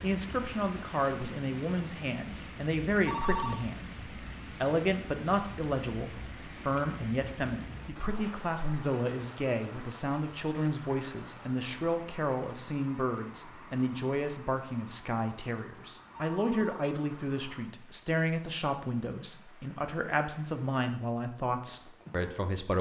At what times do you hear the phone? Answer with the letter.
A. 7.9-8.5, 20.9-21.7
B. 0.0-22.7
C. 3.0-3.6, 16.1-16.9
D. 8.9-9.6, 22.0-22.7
C.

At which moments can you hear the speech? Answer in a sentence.
The speech can be heard from 0.0 to 22.7 s.